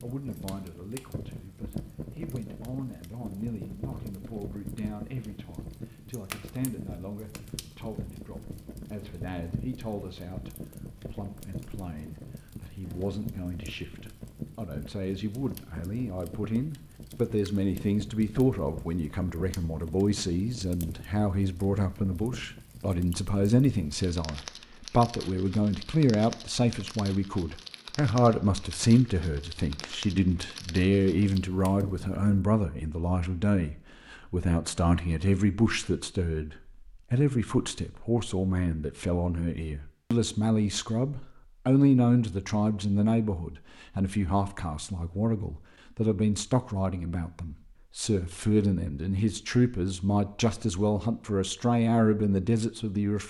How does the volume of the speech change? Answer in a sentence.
The volume of the speech goes up.